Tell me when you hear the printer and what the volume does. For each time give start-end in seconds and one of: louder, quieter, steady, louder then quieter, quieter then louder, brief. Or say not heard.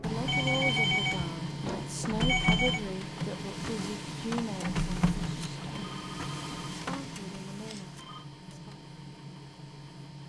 0.0-10.2 quieter.